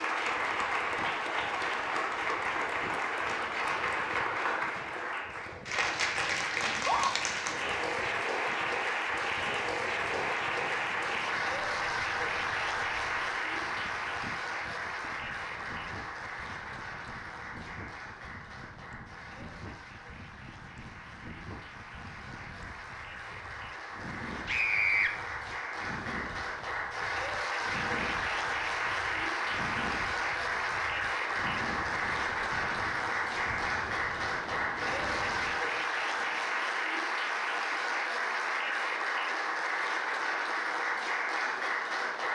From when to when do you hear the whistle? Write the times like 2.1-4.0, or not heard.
not heard.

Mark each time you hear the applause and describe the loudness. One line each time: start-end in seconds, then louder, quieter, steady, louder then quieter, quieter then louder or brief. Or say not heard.
0.0-42.3 quieter then louder.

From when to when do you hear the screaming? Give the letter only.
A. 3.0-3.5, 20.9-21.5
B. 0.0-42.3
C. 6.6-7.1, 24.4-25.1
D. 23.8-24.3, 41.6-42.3
C.